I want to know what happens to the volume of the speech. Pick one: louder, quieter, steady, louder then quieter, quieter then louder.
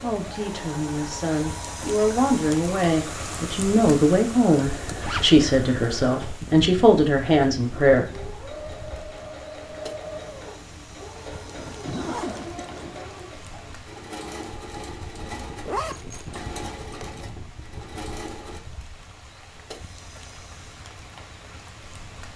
louder.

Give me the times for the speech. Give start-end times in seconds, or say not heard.
0.0-8.1.